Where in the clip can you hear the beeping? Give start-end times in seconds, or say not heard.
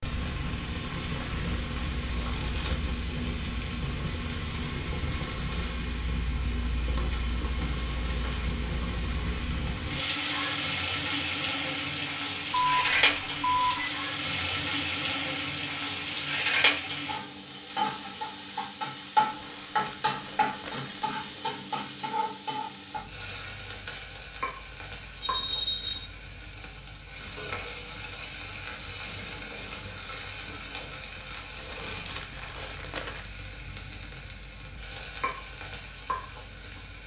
12.5-13.9, 25.2-26.1.